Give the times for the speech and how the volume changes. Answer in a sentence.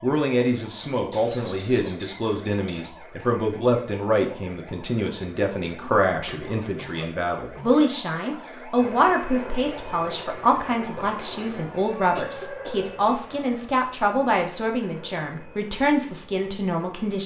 The speech can be heard from 0.0 to 17.2 s, at a steady volume.